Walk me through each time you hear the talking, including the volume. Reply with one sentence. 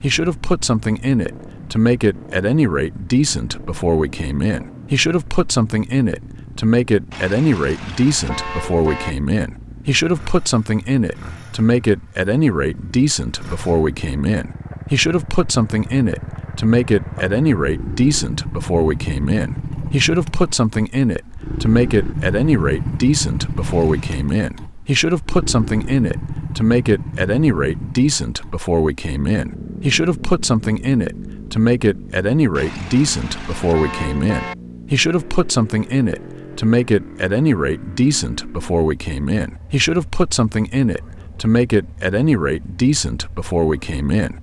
You can hear the talking from 0.0 to 44.3 s, at a steady volume.